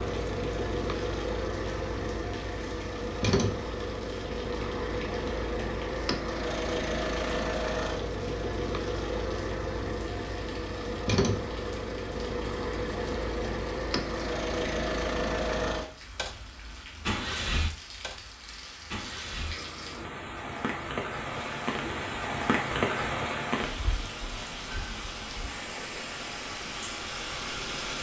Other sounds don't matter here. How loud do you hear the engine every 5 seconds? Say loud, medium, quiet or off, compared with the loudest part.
loud, loud, loud, loud, quiet, medium.